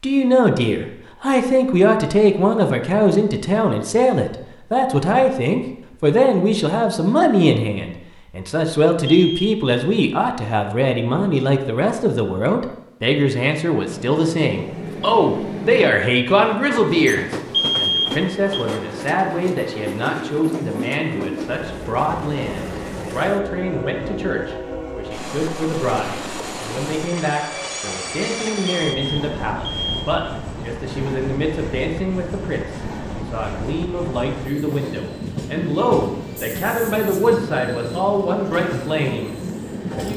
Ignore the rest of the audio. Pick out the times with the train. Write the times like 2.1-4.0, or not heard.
13.8-40.1.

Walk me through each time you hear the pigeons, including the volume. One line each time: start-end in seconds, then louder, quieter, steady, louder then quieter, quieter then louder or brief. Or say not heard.
not heard.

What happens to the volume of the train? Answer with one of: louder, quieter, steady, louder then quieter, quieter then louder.
steady.